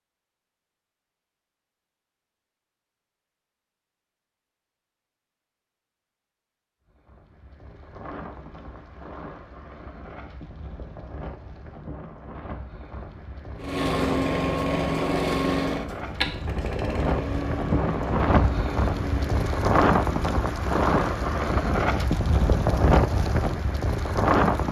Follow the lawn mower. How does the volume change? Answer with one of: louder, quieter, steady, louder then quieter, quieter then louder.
quieter.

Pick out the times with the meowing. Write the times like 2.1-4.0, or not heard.
not heard.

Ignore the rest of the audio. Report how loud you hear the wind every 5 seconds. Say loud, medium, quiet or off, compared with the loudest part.
off, quiet, quiet, loud, loud.